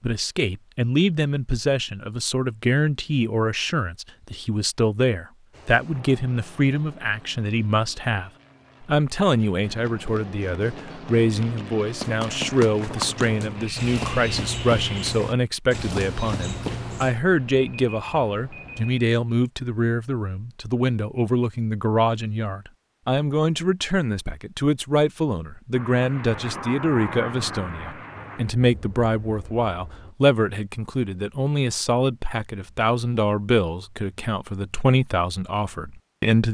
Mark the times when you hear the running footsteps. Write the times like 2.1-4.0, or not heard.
9.3-17.2.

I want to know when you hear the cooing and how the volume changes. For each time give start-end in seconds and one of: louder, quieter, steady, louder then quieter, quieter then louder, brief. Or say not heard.
not heard.